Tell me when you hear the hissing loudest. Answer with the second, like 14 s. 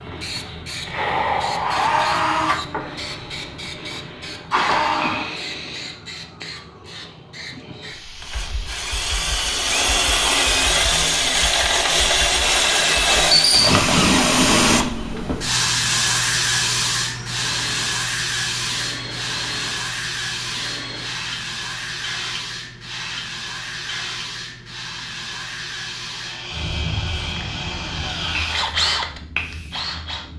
14 s.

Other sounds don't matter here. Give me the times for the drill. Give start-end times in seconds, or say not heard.
0.0-5.3, 8.1-24.2, 26.0-30.3.